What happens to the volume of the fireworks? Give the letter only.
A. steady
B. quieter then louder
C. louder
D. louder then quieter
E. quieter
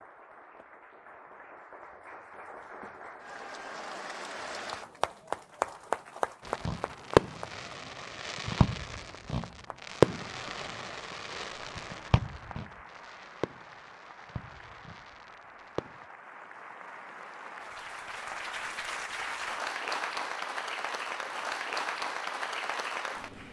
E.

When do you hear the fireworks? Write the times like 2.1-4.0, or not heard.
6.5-16.1.